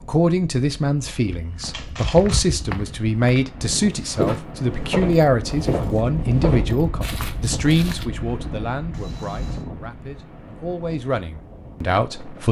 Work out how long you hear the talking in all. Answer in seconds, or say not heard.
12 s.